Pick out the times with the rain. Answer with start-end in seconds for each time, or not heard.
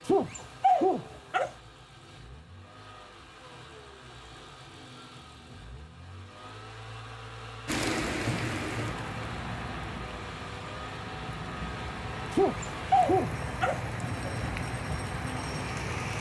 7.7-16.1.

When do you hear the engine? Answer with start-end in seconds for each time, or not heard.
0.0-16.1.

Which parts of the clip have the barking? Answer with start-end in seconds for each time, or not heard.
0.1-1.5, 12.3-13.8.